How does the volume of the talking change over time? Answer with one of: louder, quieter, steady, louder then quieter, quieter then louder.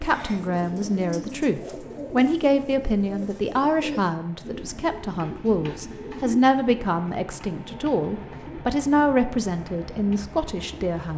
steady.